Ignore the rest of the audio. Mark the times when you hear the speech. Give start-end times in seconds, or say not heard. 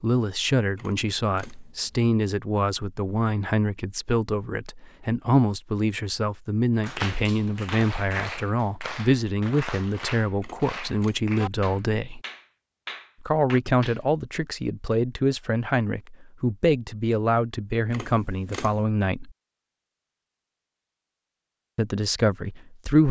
0.0-12.2, 13.2-19.3, 21.8-23.0.